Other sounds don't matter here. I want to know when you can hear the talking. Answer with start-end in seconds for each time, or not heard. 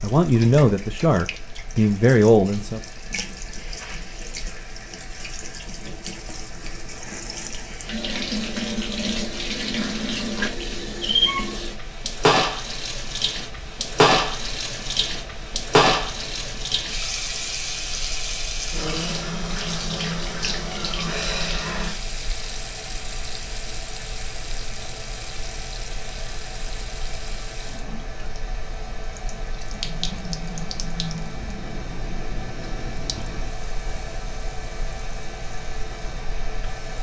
0.0-2.8.